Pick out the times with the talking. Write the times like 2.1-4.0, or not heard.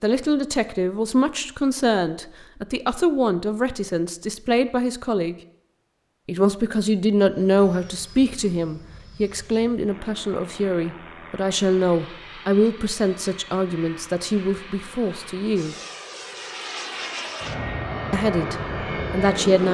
0.0-5.3, 6.2-15.8, 18.1-19.6.